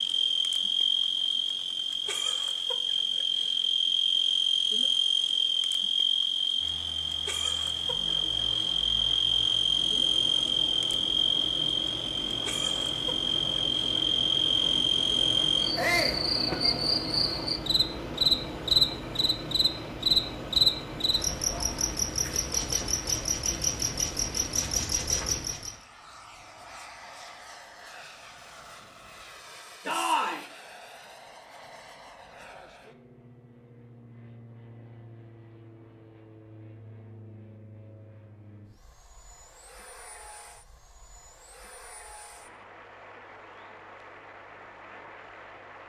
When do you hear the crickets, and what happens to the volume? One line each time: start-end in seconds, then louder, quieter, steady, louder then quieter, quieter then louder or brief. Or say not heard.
0.0-25.8 steady.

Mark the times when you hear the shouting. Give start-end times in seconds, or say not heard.
15.8-16.2, 29.9-30.4.